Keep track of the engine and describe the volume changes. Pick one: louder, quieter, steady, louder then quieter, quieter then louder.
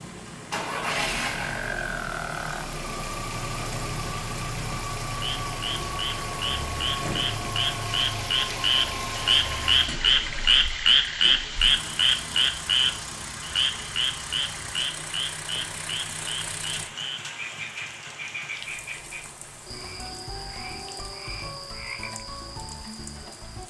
quieter.